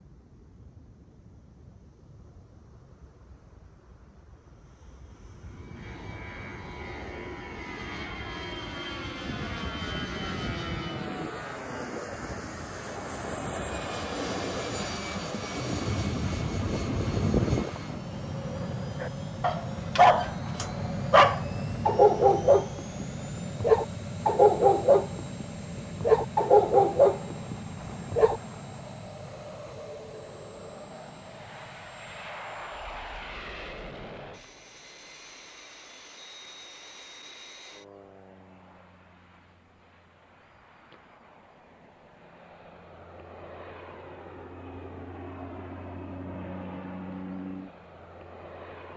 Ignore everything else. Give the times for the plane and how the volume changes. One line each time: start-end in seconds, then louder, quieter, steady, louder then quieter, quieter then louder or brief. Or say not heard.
0.0-48.9 louder then quieter.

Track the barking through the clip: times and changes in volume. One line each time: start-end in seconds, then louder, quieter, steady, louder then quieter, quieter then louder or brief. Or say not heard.
19.0-28.4 steady.